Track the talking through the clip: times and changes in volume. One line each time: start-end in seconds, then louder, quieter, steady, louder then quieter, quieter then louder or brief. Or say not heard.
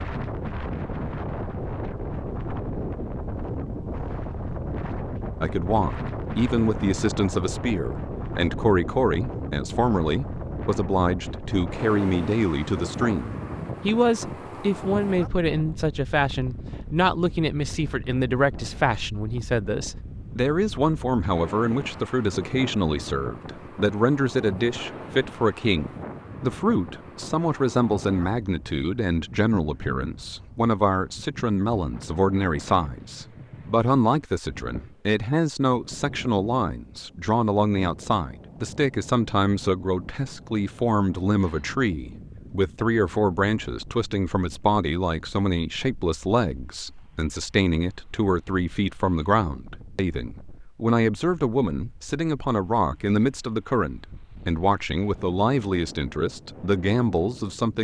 5.4-57.7 steady.